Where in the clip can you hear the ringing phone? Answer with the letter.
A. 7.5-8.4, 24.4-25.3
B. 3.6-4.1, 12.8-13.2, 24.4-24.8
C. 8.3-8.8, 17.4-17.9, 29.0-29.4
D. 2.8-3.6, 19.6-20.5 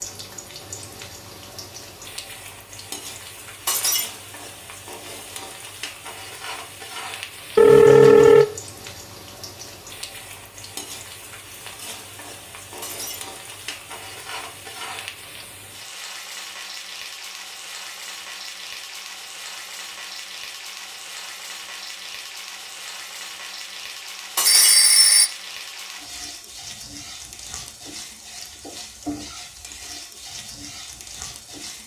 A.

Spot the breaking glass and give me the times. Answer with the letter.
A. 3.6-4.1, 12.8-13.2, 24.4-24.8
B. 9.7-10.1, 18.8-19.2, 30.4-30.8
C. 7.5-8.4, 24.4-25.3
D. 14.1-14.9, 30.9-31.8
A.